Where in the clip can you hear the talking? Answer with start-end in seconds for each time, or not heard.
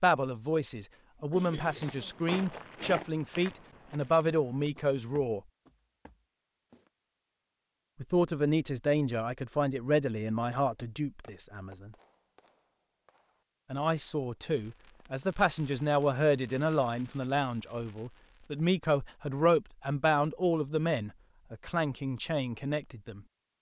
0.0-5.4, 8.0-11.9, 13.7-23.2.